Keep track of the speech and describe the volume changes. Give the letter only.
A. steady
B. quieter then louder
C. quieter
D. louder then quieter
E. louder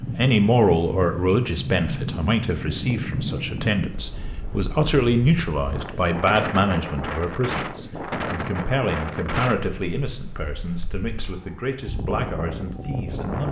C.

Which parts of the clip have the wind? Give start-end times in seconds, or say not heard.
0.0-13.4.